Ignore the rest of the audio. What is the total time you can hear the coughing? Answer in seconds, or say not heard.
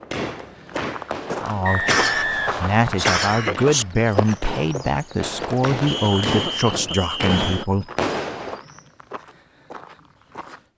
4 s.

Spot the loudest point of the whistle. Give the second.
2 s.